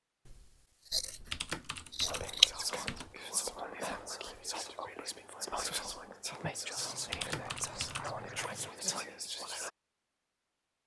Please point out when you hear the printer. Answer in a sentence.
You can't hear the printer here.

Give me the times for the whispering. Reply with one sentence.
You can hear the whispering from 2.0 to 9.7 s.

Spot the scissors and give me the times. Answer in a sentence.
You can hear the scissors from 0.2 to 2.6 s and from 6.8 to 8.7 s.